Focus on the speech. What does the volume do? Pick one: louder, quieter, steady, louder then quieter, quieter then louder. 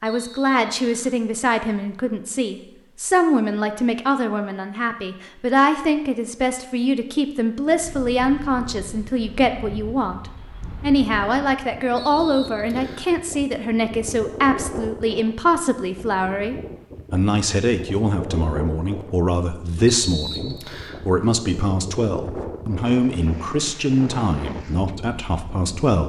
steady.